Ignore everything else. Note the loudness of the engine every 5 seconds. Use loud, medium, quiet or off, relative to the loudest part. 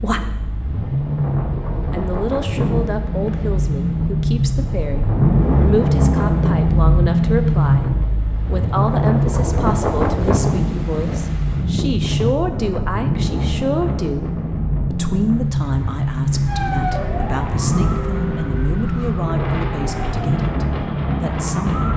medium, loud, medium, medium, medium.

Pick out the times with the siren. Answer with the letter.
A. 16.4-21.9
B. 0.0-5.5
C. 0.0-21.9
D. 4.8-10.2
A.